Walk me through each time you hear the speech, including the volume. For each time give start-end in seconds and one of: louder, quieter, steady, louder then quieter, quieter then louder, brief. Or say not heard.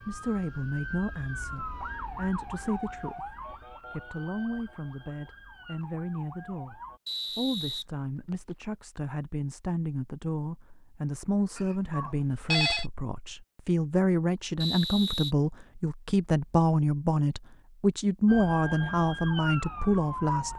0.1-20.5 louder.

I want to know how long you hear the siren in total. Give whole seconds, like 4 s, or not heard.
9 s.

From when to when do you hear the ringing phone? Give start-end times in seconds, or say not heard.
11.6-12.8.